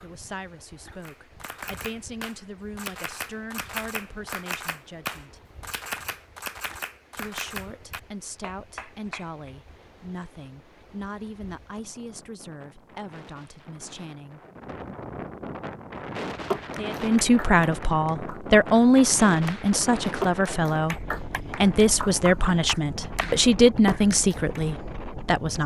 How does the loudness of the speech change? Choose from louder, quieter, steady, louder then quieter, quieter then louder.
louder.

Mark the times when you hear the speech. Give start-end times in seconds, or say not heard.
0.0-5.4, 7.2-14.4, 16.7-25.6.